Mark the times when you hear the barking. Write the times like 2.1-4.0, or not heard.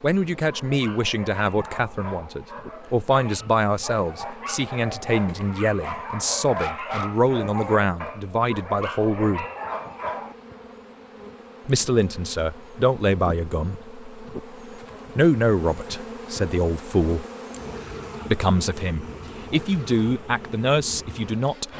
0.3-10.3.